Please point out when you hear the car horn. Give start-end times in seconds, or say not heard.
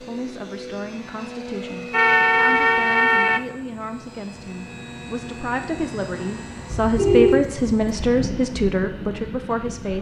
1.9-3.4, 6.7-8.3.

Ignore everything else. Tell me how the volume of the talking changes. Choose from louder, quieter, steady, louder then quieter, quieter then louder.
louder.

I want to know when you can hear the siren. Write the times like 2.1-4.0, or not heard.
not heard.